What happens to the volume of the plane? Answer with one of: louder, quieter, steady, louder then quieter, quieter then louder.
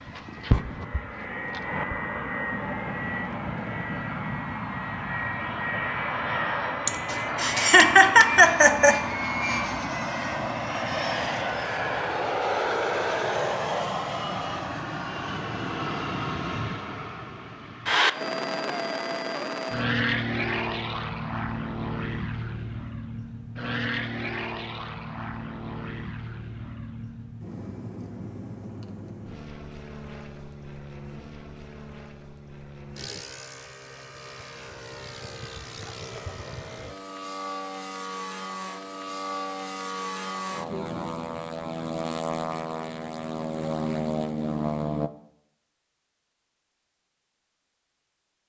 quieter then louder.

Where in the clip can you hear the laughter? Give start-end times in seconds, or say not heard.
6.8-9.0.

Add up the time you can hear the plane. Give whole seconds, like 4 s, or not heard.
45 s.